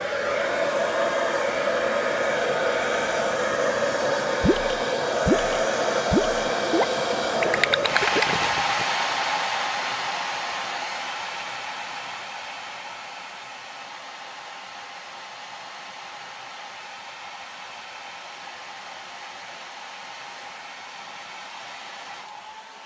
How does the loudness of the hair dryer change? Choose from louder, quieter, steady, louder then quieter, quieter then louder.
quieter.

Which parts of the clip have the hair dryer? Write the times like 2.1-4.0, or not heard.
0.0-22.8.